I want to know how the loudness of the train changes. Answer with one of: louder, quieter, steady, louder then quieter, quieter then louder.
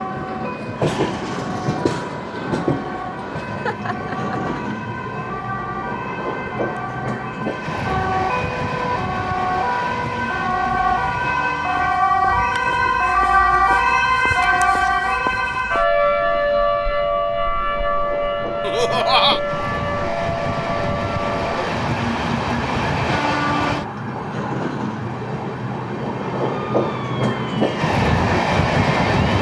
quieter then louder.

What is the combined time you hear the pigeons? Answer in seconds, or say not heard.
not heard.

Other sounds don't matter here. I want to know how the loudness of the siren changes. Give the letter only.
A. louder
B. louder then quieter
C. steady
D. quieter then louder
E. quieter
B.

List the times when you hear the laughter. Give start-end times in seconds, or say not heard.
3.5-4.4, 18.6-19.4.